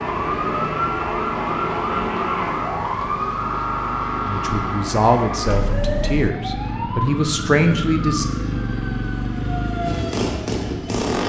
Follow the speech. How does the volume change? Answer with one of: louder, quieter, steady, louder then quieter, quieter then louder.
quieter then louder.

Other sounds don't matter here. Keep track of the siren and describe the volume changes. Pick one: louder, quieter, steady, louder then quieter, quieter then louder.
quieter.